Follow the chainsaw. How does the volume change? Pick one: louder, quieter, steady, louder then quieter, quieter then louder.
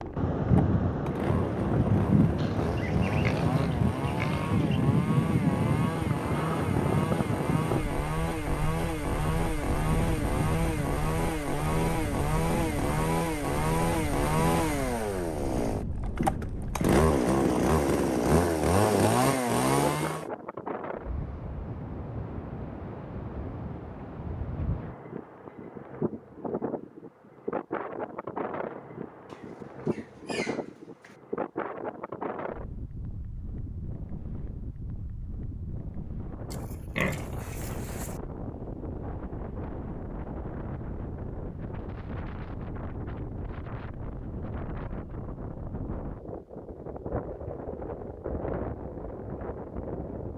louder.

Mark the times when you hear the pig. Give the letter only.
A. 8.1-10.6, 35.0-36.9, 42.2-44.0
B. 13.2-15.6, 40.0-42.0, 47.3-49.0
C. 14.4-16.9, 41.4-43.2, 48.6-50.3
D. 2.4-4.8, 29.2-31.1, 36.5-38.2
D.